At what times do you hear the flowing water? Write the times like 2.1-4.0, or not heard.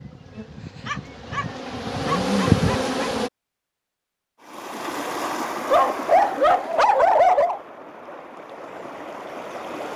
4.4-9.9.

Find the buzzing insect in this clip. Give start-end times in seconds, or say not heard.
0.0-3.3.